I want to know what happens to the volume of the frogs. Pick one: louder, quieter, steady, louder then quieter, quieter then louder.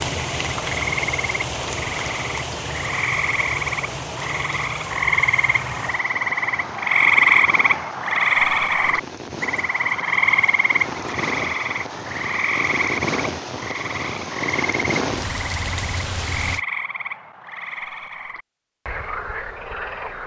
louder then quieter.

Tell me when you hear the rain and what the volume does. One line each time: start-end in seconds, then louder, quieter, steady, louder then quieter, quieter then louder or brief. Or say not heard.
0.0-16.6 quieter then louder.